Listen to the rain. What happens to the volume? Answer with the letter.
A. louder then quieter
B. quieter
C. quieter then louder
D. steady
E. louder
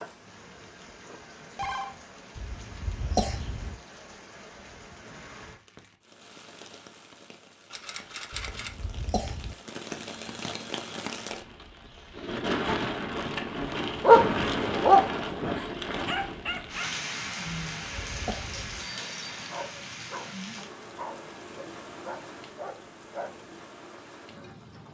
A.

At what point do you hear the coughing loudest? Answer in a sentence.
The loudest moment of the coughing is at 3 seconds.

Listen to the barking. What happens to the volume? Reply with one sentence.
The volume of the barking goes down.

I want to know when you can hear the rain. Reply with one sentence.
You can hear the rain from 0.0 to 24.8 s.